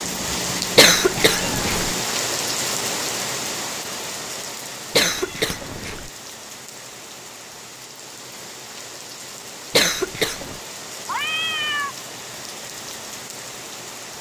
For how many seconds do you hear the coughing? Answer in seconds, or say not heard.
3 s.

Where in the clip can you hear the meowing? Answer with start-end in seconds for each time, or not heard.
0.0-2.0, 5.1-5.8, 11.1-11.9.